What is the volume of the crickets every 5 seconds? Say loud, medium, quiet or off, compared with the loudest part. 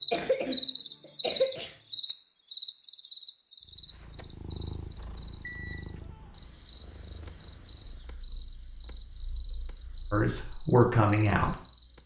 loud, medium, quiet.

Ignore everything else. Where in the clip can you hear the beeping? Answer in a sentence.
The beeping can be heard from 5.4 to 6.0 s.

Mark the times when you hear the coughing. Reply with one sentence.
The coughing can be heard from 0.1 to 1.7 s.